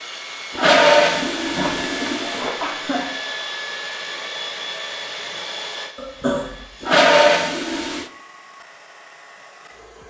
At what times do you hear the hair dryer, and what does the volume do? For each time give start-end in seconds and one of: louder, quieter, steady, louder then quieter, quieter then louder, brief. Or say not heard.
0.0-10.0 quieter.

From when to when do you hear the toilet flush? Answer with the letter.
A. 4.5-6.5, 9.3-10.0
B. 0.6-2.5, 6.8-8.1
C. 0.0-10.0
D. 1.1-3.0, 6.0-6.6
B.